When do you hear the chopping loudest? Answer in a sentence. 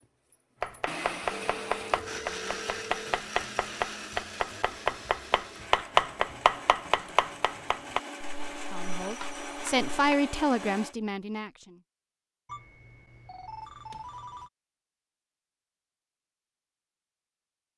The loudest moment of the chopping is at 6 seconds.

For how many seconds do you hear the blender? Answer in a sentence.
The blender can be heard for 11 seconds in total.